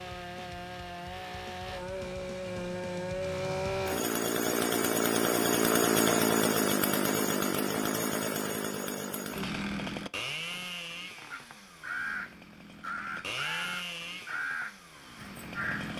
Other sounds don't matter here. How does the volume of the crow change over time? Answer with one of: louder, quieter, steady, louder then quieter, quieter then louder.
quieter.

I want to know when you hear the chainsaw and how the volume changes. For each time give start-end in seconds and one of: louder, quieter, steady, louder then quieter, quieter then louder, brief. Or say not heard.
0.0-15.9 louder then quieter.